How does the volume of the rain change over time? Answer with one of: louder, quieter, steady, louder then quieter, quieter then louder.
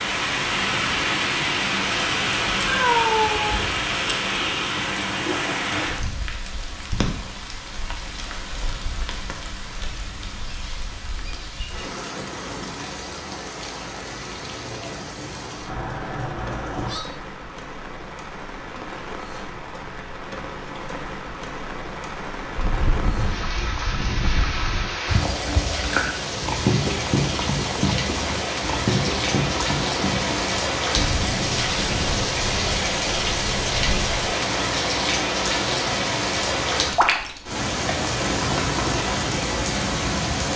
quieter then louder.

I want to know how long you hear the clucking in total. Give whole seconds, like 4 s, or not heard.
not heard.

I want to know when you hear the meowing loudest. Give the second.
3 s.